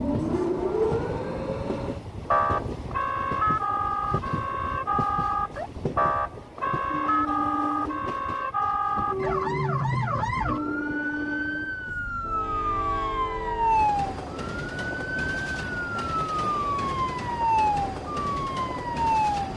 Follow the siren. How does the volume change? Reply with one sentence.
The loudness of the siren stays about the same.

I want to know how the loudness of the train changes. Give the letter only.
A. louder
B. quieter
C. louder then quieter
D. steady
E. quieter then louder
D.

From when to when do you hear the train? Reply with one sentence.
You can hear the train from 0.0 to 19.5 s.